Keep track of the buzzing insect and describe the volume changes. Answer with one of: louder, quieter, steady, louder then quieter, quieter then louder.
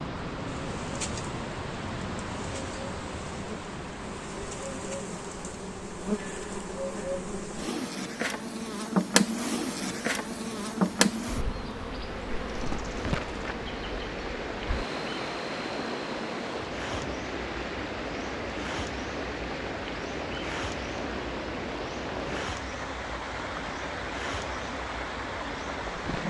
louder then quieter.